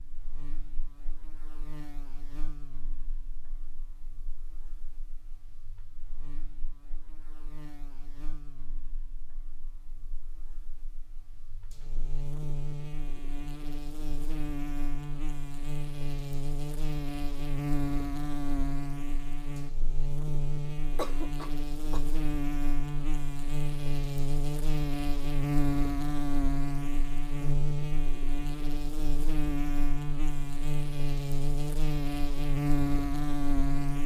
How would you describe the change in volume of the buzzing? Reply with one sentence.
The volume of the buzzing goes up.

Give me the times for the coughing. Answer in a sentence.
The coughing can be heard from 20.9 to 22.0 s.